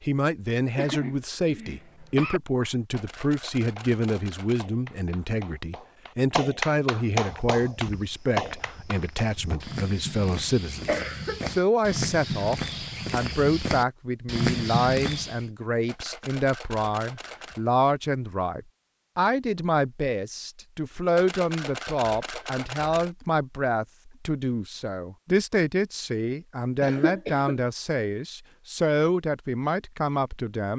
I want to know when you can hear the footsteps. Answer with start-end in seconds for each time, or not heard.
7.2-15.4.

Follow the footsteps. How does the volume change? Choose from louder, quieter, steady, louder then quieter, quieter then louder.
louder.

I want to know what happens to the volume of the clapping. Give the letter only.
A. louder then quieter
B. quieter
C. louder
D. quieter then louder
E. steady
C.